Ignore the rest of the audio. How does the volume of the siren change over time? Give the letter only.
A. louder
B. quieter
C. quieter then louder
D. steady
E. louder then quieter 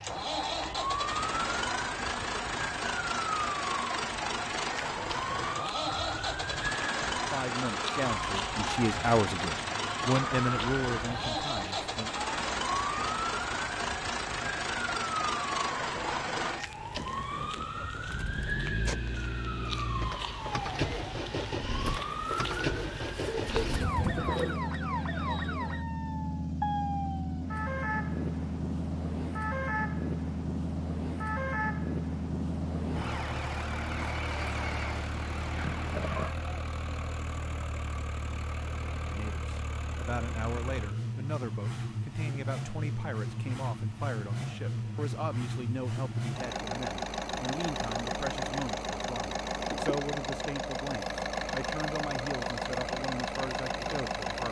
D.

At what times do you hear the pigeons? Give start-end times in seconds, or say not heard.
21.9-24.6.